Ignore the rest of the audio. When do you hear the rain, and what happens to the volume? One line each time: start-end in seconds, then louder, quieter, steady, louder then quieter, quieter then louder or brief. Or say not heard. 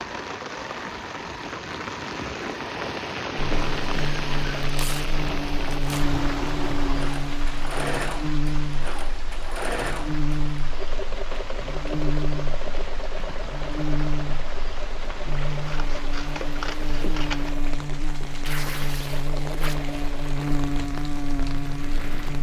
0.0-22.3 quieter.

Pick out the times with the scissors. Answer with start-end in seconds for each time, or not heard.
15.5-17.5.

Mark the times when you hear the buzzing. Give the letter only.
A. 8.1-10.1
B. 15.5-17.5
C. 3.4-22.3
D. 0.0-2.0
C.